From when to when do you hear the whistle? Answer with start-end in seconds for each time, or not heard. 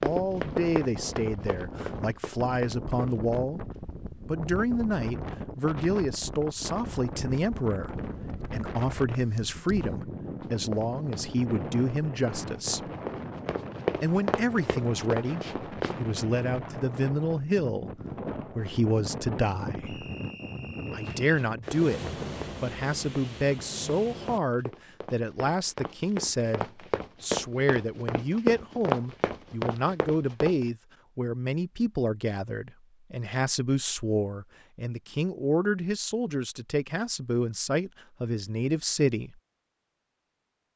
19.9-21.2.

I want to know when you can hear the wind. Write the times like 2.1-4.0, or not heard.
0.0-24.4.